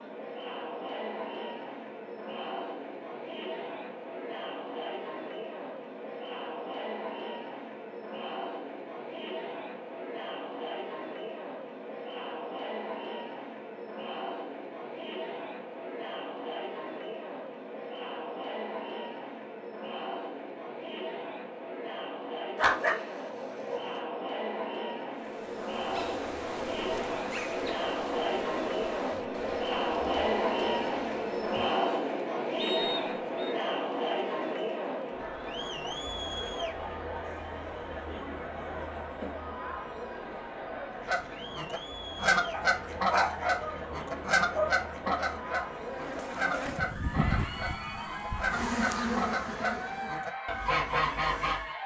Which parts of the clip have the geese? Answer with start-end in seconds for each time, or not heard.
41.0-51.8.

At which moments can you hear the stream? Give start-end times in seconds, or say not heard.
not heard.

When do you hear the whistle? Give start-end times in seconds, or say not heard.
32.5-33.5.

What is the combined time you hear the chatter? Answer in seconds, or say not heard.
52 s.